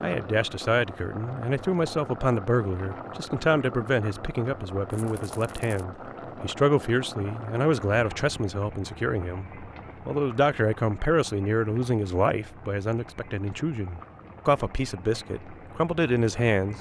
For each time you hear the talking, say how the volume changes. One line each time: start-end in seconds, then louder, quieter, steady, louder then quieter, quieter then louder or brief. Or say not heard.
0.0-16.7 steady.